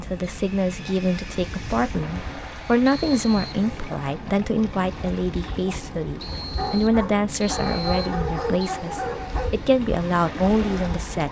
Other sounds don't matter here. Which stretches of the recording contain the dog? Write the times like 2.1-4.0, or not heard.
6.5-9.5.